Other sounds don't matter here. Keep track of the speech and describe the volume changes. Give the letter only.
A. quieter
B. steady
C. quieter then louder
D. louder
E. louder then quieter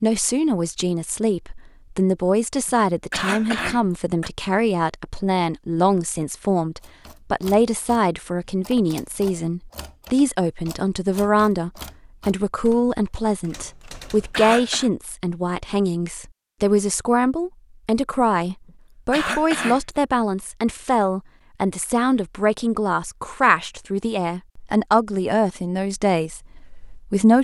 B.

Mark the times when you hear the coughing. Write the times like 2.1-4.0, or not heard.
2.6-4.3, 13.9-14.9, 19.1-19.8.